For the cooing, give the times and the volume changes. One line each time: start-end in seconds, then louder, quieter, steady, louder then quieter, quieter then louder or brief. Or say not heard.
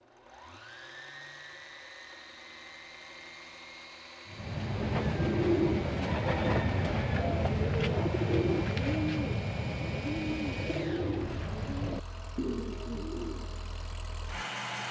4.2-13.7 quieter.